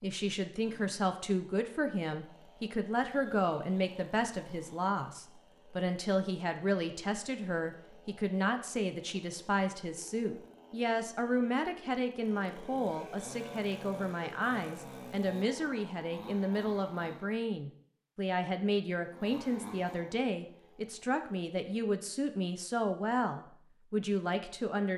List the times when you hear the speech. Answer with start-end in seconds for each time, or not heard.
0.0-24.9.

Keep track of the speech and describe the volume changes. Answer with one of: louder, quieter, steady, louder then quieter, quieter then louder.
steady.